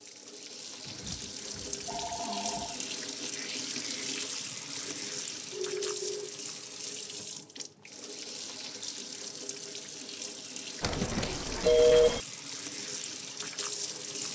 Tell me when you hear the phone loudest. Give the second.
12 s.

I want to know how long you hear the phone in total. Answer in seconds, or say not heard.
5 s.